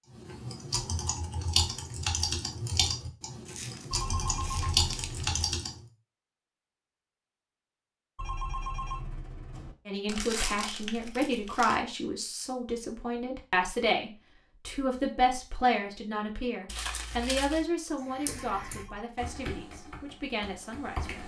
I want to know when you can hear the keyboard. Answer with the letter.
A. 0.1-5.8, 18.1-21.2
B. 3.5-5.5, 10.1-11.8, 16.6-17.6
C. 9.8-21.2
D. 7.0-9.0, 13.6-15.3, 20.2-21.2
A.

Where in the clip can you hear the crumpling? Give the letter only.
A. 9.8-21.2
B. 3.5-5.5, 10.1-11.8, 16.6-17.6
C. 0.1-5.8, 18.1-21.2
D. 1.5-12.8
B.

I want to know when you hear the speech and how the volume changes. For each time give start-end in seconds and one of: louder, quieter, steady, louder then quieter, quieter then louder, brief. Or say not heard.
9.8-21.2 quieter.